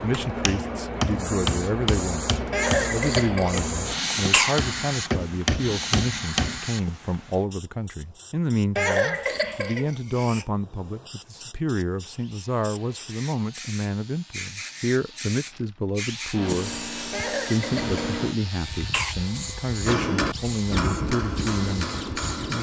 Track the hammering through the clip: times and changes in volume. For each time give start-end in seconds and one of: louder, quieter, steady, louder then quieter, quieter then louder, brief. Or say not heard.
0.5-6.6 quieter then louder
19.9-22.5 brief.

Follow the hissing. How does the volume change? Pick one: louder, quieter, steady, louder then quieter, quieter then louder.
quieter then louder.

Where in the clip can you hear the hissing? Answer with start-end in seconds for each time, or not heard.
0.0-22.5.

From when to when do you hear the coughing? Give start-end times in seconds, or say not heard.
2.5-4.5, 8.8-10.4, 17.1-19.1.